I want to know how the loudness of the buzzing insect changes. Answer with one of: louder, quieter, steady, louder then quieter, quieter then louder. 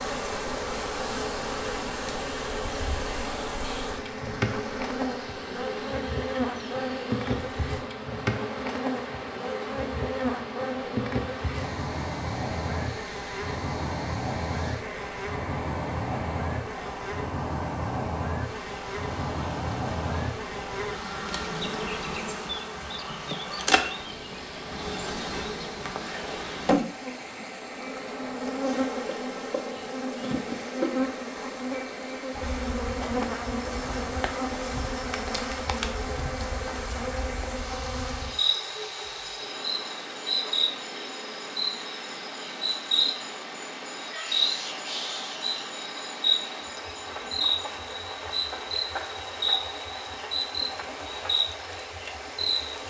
steady.